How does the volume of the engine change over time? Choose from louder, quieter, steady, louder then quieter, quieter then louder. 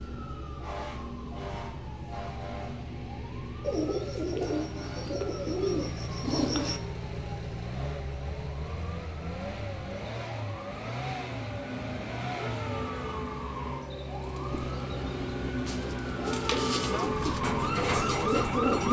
louder.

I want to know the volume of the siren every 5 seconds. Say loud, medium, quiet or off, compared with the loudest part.
medium, quiet, medium, loud.